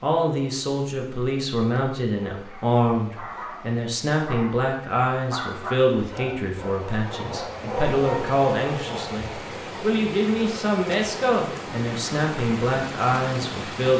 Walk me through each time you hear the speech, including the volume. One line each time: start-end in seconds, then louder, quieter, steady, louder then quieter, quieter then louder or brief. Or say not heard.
0.0-13.9 steady.